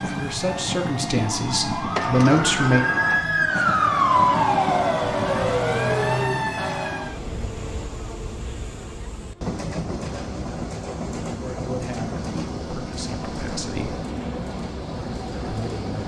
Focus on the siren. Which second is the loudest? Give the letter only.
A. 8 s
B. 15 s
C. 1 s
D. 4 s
D.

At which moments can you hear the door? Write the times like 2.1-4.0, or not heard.
1.9-3.2.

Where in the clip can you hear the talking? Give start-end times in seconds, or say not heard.
0.1-2.9, 11.3-14.0, 15.4-16.0.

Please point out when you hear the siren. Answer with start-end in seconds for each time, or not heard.
0.0-7.2.